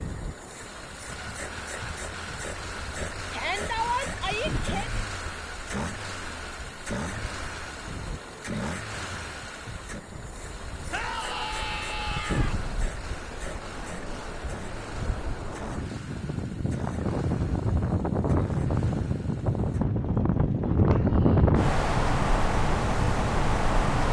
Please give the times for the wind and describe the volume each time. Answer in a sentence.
The wind can be heard from 0.0 to 24.0 s, getting louder.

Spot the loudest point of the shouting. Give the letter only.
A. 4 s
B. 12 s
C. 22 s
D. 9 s
A.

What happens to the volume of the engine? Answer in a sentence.
The loudness of the engine goes down.